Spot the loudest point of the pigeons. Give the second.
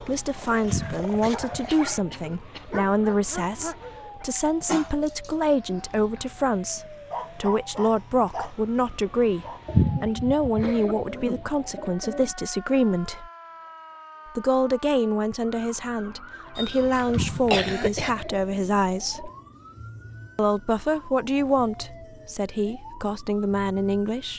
10 s.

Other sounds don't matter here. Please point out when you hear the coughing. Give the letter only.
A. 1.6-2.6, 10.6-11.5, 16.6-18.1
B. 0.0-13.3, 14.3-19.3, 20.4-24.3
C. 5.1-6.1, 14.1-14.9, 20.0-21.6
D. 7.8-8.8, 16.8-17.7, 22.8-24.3
A.